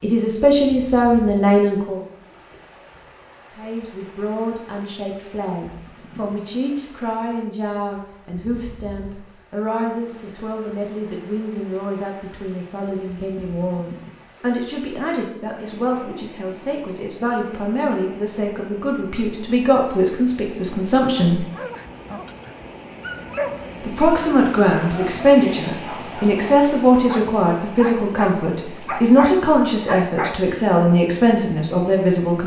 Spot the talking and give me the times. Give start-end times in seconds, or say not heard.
0.0-2.0, 3.5-21.4, 23.8-32.4.